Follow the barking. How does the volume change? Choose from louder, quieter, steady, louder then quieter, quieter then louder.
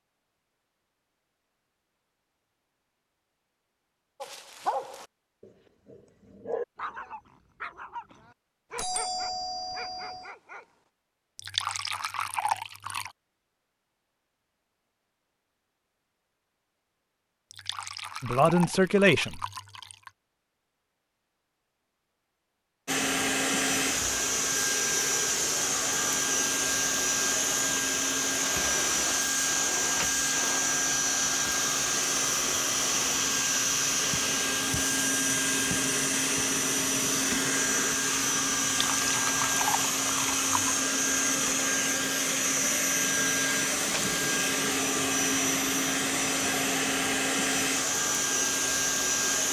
quieter.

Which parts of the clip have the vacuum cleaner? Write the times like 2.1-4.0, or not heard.
22.9-49.4.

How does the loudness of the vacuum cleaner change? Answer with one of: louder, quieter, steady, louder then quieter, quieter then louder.
steady.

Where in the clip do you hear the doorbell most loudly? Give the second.
9 s.